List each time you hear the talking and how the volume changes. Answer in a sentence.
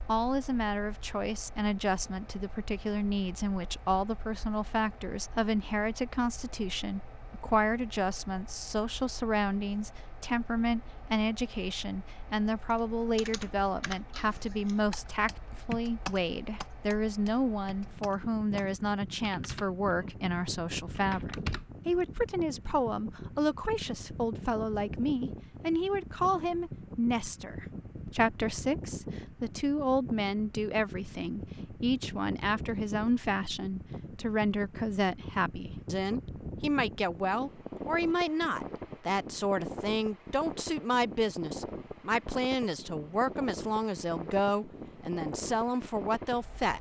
The talking can be heard from 0.0 to 46.7 s, at a steady volume.